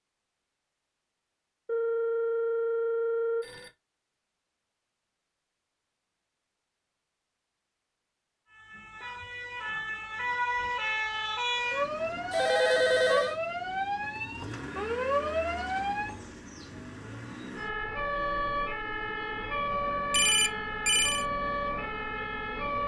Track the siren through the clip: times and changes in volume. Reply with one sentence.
The siren can be heard from 8.5 to 22.8 s, at a steady volume.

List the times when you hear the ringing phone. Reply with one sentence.
You can hear the ringing phone from 1.6 to 3.7 s, from 12.3 to 13.3 s and from 20.1 to 21.2 s.